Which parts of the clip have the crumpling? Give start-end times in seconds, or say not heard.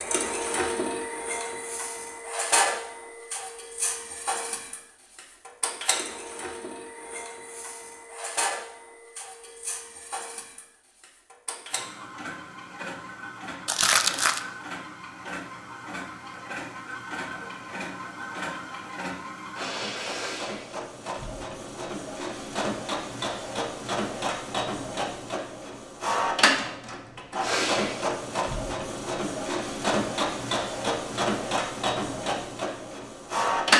13.7-14.4.